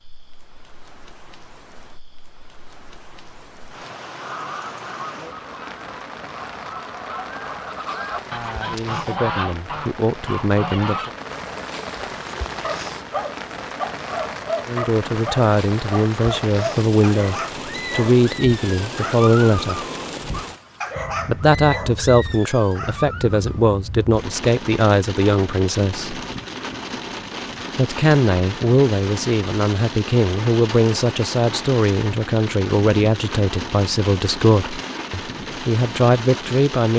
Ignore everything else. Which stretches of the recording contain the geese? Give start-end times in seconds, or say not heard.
4.2-11.2.